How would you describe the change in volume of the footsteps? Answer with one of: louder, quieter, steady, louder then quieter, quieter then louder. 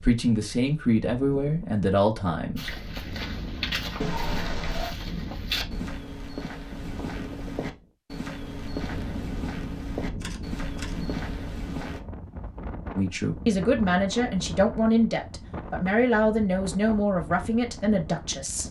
steady.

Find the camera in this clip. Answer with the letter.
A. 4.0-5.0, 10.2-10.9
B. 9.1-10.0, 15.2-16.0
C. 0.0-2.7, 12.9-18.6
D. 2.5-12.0
A.